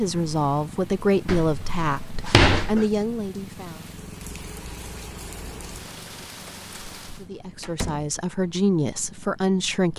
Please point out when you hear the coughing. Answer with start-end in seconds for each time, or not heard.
not heard.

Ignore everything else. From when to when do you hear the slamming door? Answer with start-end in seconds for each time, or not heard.
1.2-2.9, 7.6-8.2.